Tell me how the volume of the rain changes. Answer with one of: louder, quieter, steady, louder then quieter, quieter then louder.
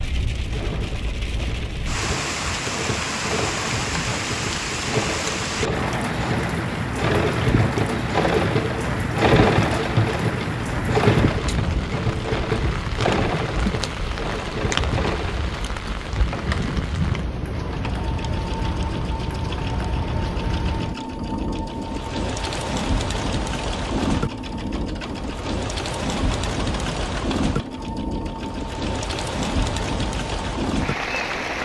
steady.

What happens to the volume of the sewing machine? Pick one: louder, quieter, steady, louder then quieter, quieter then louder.
louder then quieter.